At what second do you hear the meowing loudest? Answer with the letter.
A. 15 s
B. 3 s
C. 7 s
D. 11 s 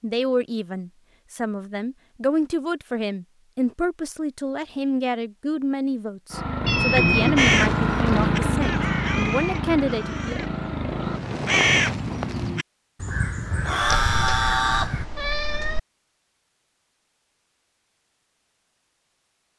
C.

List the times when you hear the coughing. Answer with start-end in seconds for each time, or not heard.
not heard.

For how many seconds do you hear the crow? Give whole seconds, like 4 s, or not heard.
8 s.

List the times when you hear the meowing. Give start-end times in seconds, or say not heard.
6.7-7.5, 13.8-15.8.